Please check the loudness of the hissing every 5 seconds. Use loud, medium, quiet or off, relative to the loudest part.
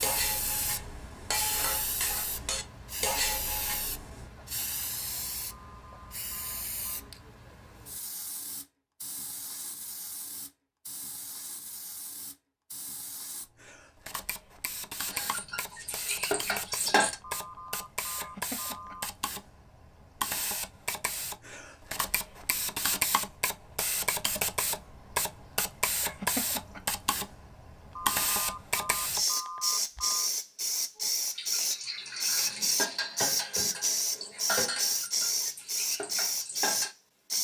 medium, quiet, quiet, medium, medium, loud, loud, loud.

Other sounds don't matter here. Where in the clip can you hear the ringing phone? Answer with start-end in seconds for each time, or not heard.
5.5-7.1, 17.2-19.1, 27.9-30.3.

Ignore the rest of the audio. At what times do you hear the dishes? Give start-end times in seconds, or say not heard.
0.0-4.2, 15.1-17.1, 31.4-36.9.